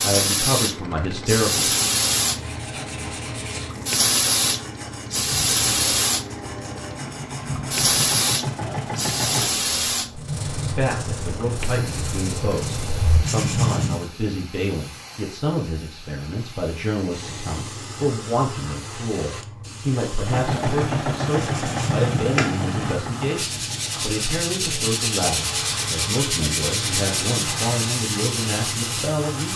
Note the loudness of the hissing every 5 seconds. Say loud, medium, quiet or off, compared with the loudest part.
loud, loud, quiet, quiet, quiet, medium.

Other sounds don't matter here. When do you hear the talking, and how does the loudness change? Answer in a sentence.
You can hear the talking briefly from 0.0 to 1.7 s; and from 10.8 to 29.5 s, at a steady volume.